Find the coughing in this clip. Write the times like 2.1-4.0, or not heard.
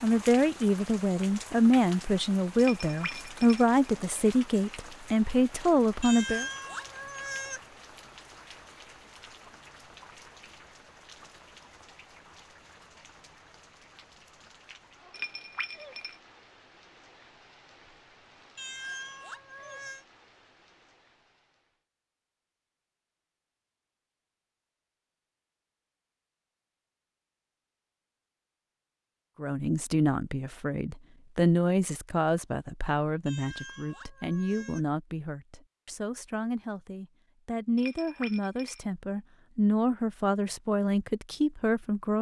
not heard.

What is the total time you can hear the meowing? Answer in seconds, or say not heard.
5 s.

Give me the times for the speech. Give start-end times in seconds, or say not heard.
0.0-6.5, 29.4-42.1.